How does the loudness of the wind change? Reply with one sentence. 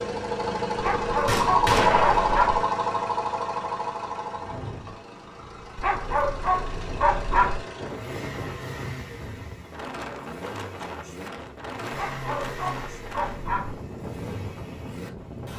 The loudness of the wind goes up.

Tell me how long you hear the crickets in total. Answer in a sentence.
You can't hear the crickets here.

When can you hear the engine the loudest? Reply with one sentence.
The volume of the engine peaks at 2 seconds.